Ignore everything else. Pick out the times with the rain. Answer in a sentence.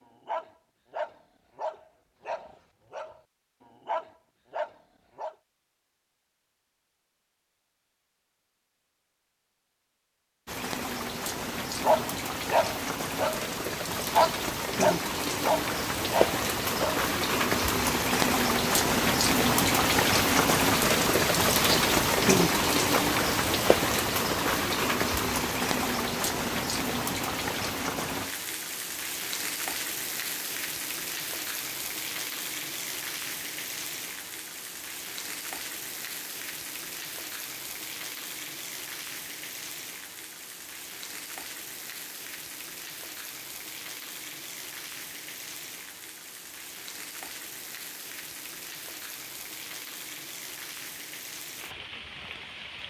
The rain can be heard from 10.4 to 52.8 s.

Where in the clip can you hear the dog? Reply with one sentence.
The dog can be heard from 0.2 to 5.3 s and from 11.8 to 17.1 s.